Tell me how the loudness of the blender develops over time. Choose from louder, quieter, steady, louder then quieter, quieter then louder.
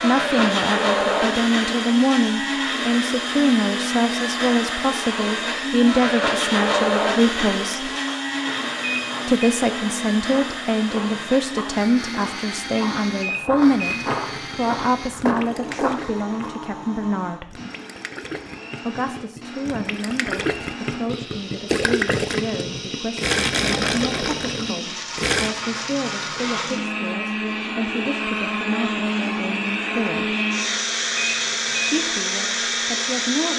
quieter then louder.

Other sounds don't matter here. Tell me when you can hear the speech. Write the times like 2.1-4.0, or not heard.
0.0-7.9, 9.2-17.6, 18.9-30.4, 31.9-33.5.